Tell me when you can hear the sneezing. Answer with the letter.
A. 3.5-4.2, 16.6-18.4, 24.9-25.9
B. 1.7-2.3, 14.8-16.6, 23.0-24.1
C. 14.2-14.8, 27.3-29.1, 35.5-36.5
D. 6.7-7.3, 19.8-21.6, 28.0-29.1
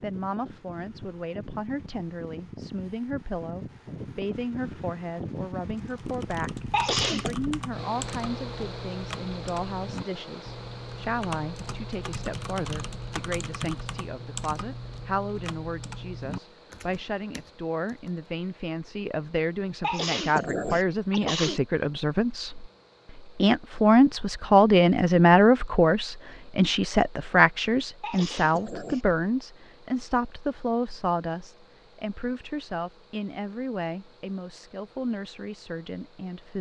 D.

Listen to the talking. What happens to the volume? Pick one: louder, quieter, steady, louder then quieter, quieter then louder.
louder then quieter.